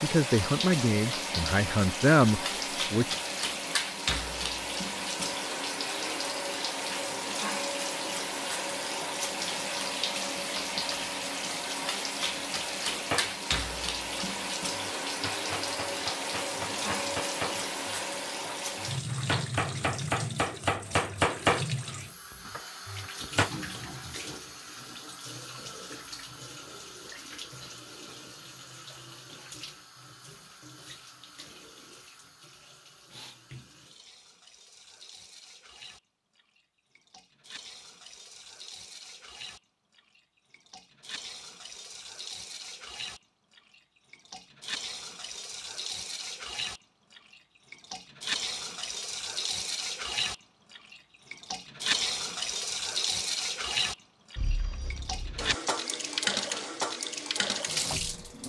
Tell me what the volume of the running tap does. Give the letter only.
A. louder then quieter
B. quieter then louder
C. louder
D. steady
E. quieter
B.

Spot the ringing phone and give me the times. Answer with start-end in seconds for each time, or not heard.
54.4-55.5.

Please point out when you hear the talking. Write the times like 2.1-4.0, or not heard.
0.0-3.1.